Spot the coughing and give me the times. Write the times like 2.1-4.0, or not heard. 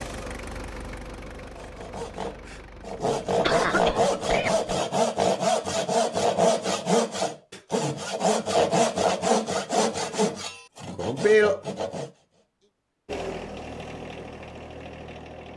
3.4-4.7.